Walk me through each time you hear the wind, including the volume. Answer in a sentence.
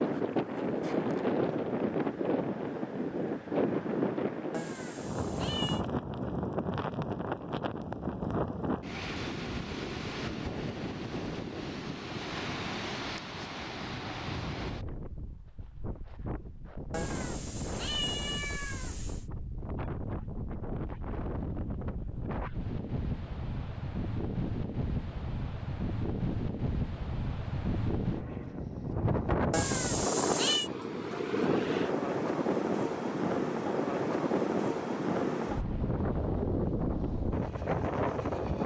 The wind can be heard from 0.0 to 38.6 s, getting quieter then louder.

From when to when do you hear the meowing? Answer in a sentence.
The meowing can be heard from 4.5 to 5.8 s, from 16.9 to 19.2 s and from 29.5 to 30.7 s.